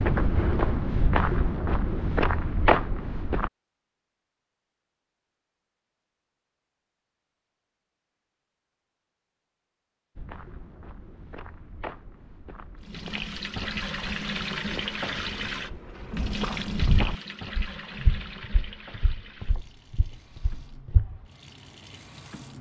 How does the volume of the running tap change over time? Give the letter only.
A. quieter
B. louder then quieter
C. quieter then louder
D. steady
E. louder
A.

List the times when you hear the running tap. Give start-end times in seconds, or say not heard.
12.8-22.5.